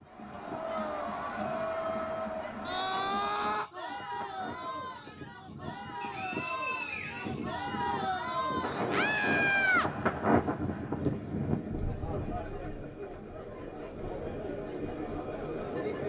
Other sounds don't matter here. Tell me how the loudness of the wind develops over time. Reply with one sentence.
The volume of the wind goes up, then down.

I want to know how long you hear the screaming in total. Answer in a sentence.
The screaming can be heard for 2 seconds in total.